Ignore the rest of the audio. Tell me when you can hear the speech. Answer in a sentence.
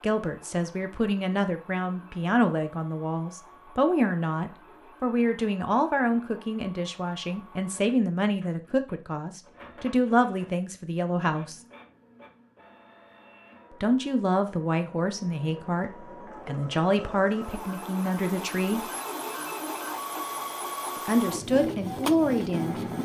The speech can be heard from 0.0 to 11.6 s, from 13.8 to 18.9 s and from 20.9 to 22.8 s.